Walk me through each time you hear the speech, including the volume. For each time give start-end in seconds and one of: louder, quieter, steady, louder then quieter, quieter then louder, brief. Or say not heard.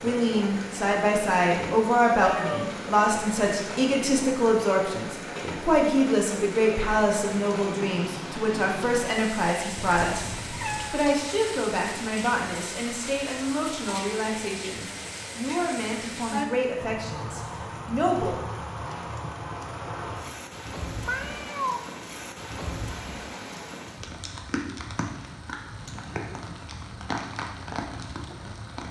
0.0-18.4 quieter.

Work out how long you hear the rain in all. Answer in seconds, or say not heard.
29 s.